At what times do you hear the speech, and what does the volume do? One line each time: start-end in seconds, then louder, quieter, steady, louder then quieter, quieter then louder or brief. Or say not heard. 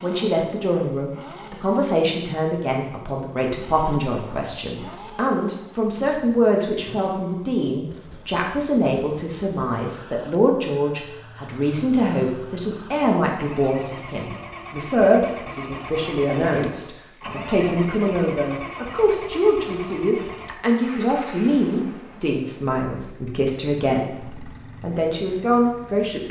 0.0-26.2 steady.